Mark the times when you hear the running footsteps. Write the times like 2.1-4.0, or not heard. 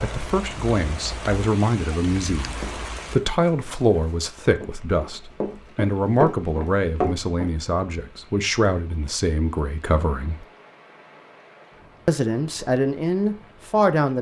2.5-7.5.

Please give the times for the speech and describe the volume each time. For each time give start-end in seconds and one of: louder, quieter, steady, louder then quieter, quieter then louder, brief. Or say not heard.
0.0-10.4 steady
12.1-14.1 brief.